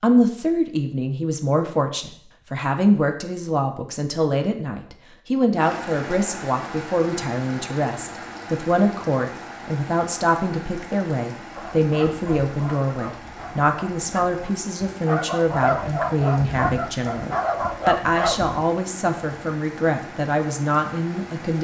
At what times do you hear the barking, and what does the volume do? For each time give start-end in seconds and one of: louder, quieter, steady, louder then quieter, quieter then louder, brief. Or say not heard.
11.6-18.6 louder.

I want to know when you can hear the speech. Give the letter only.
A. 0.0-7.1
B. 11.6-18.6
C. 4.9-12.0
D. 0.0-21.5
D.